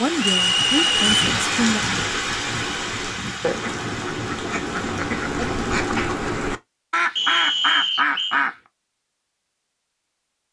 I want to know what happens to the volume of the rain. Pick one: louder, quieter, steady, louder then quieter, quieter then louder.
quieter.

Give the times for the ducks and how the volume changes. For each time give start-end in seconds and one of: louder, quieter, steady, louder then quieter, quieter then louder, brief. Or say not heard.
0.8-8.6 louder.